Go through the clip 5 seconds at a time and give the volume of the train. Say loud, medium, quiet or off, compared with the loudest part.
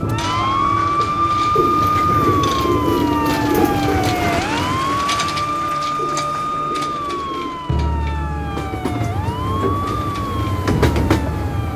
medium, medium, loud.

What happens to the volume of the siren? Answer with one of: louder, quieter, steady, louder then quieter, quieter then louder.
quieter.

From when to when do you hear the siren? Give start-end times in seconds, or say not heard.
0.0-11.7.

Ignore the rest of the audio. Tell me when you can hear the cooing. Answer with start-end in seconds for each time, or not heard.
1.6-4.3, 6.0-7.8.